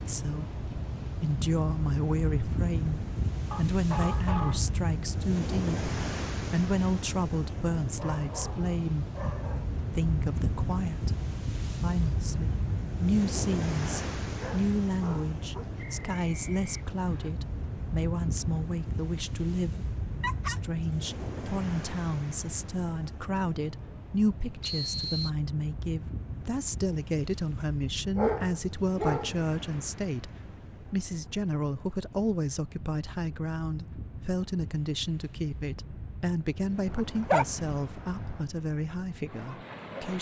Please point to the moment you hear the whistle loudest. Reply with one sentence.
The volume of the whistle peaks at 25 seconds.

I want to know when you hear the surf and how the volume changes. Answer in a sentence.
The surf can be heard from 0.0 to 40.1 s, getting quieter.